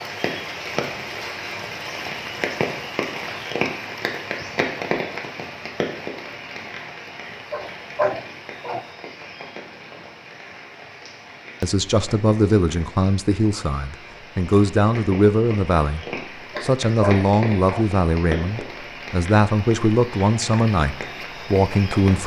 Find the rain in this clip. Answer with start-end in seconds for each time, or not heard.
0.0-22.2.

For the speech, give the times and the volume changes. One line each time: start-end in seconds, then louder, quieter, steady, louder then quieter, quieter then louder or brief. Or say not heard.
11.6-22.2 steady.